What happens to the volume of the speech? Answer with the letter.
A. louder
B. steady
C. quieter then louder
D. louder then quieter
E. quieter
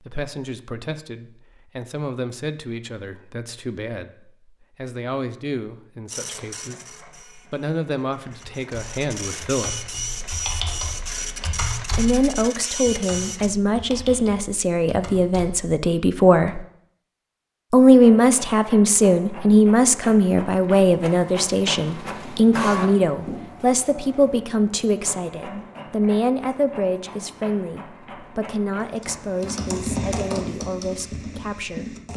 D.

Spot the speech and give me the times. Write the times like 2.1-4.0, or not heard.
0.0-9.9, 11.9-16.6, 17.7-31.9.